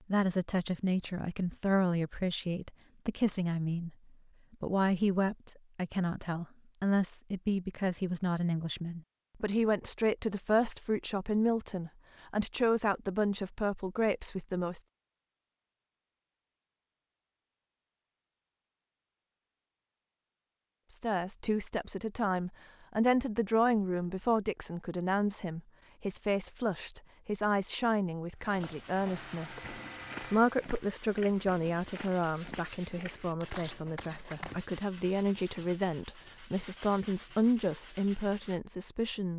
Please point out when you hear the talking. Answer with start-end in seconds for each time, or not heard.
0.1-4.0, 4.6-14.8, 20.9-39.3.